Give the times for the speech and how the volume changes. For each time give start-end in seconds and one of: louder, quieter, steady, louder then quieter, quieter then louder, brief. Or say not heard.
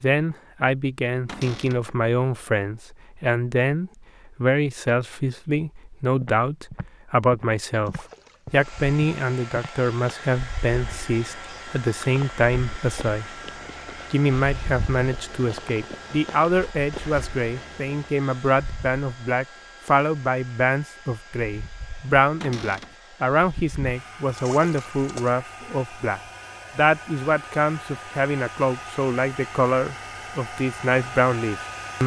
0.0-13.4 steady
14.1-32.0 steady.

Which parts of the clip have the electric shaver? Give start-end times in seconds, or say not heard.
not heard.